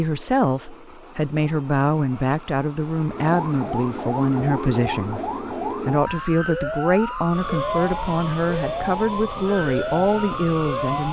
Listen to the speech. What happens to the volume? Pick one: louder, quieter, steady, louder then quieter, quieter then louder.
steady.